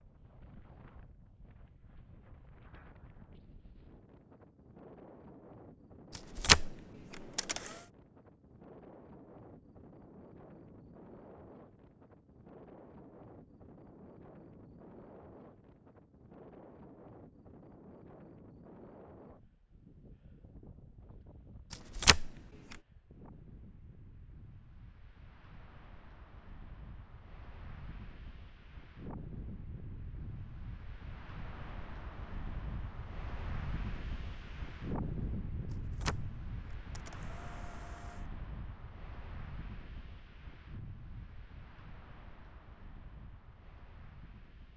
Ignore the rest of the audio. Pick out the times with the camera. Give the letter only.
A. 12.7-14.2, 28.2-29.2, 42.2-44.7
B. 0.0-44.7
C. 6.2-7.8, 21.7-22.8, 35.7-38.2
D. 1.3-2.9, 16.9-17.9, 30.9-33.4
C.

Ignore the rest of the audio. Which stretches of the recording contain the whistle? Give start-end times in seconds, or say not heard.
not heard.